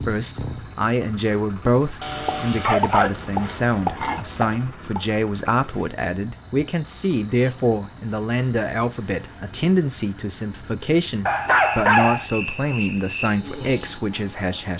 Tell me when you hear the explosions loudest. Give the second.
4 s.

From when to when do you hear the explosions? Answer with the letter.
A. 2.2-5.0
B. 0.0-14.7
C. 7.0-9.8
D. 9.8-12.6
A.